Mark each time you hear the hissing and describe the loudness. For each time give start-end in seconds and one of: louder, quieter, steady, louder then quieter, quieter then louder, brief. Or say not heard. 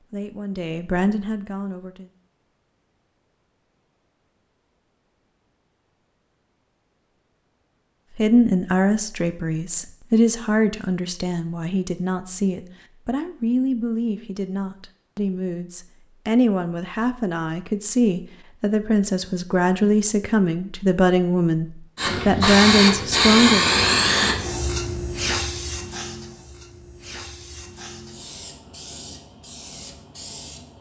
21.9-30.7 quieter.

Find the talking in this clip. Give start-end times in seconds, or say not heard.
0.0-2.1, 8.2-23.7.